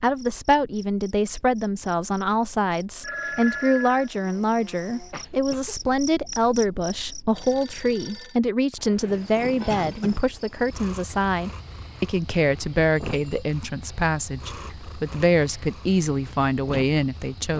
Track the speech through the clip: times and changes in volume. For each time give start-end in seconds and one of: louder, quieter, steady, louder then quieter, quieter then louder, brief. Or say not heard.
0.0-17.5 steady.